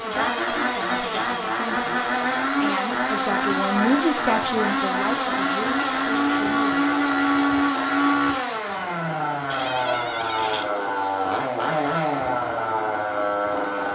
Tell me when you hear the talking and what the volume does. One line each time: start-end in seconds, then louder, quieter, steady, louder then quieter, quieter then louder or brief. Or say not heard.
0.0-6.9 louder then quieter.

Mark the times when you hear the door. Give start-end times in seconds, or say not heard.
0.1-1.3, 5.1-6.3, 9.5-10.7.